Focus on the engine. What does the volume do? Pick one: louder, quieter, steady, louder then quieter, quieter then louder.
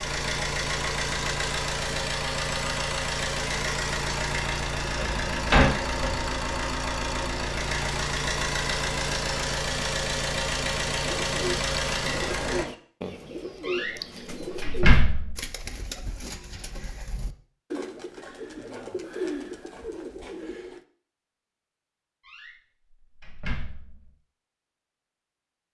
steady.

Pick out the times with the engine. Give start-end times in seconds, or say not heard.
0.0-12.7.